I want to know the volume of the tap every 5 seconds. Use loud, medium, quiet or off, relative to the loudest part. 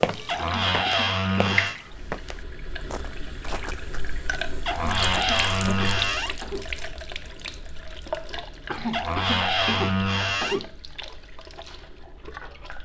loud, loud, medium.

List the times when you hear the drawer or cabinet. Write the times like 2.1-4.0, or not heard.
0.2-1.8, 4.7-6.3, 8.9-10.7.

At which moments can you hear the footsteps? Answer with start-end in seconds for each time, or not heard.
0.0-4.0.